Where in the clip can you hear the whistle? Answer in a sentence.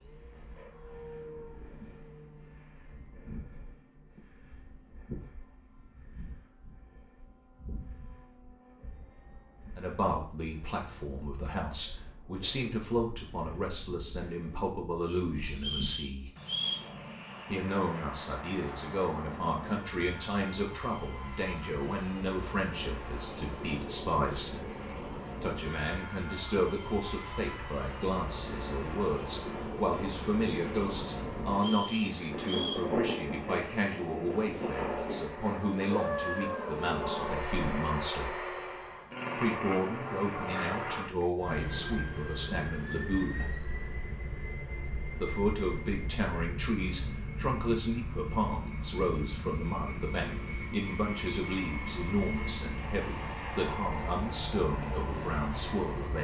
You can hear the whistle from 15.6 to 16.9 s and from 31.6 to 32.9 s.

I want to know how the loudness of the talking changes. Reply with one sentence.
The volume of the talking stays about the same.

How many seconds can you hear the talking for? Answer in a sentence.
You can hear the talking for 42 seconds altogether.